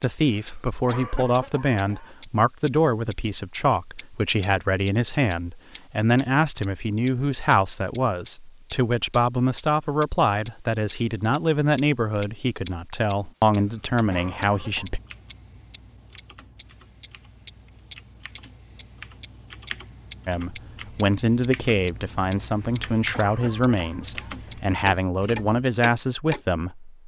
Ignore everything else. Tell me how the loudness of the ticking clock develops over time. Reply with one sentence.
The loudness of the ticking clock stays about the same.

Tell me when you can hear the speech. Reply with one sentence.
The speech can be heard from 0.0 to 15.0 s and from 20.2 to 26.9 s.